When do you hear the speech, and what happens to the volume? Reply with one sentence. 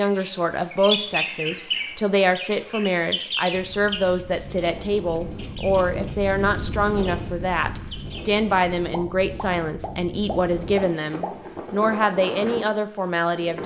You can hear the speech from 0.0 to 13.6 s, at a steady volume.